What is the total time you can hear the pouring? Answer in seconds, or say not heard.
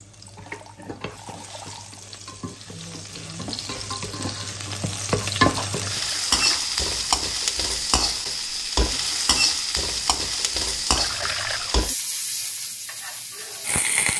4 s.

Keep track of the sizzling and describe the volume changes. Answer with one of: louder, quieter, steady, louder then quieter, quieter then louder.
louder then quieter.